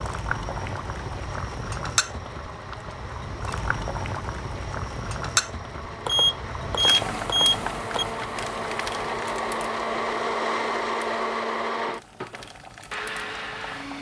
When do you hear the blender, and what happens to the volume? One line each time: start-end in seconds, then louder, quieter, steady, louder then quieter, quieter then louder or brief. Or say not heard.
0.0-13.9 louder.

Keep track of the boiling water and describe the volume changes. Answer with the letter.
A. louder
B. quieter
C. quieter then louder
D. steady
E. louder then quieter
B.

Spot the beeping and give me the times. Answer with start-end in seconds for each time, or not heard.
6.0-8.1.